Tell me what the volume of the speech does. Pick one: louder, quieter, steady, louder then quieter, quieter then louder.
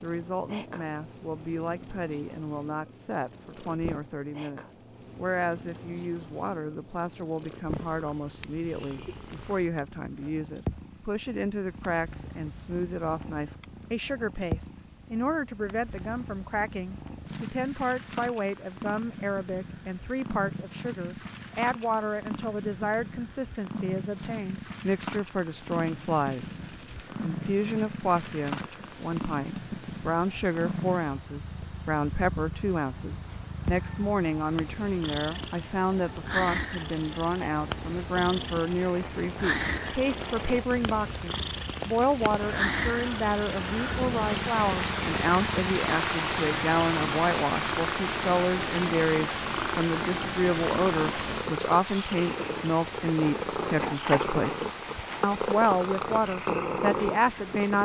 louder.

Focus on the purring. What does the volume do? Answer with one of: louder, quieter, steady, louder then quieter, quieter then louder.
louder.